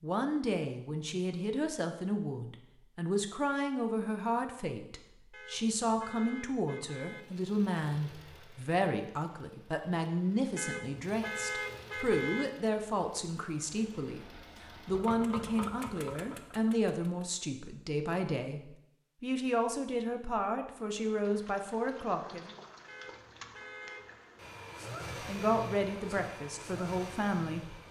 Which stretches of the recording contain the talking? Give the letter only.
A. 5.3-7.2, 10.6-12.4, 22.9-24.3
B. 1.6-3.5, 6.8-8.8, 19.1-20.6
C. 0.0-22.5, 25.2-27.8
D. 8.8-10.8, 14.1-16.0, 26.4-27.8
C.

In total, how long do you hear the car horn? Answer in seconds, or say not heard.
5 s.